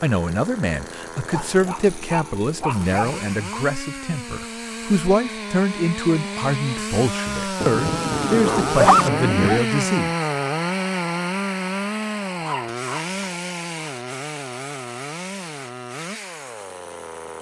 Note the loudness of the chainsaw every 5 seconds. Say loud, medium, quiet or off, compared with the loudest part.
medium, loud, loud, medium.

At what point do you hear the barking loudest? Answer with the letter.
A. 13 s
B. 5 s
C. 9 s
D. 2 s
C.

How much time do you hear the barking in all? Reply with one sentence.
The barking can be heard for 5 seconds in total.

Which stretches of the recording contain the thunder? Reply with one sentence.
You can hear the thunder from 7.6 to 9.6 s.